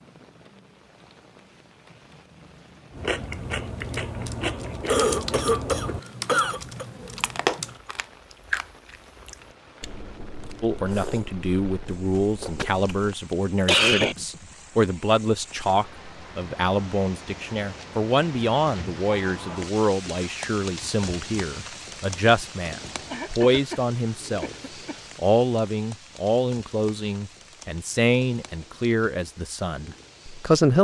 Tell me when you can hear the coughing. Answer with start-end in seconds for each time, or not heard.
4.8-6.8, 12.2-14.2, 23.1-24.9.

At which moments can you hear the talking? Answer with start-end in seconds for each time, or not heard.
10.6-24.6, 25.1-30.8.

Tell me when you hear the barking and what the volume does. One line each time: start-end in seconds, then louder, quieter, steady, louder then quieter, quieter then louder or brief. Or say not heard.
not heard.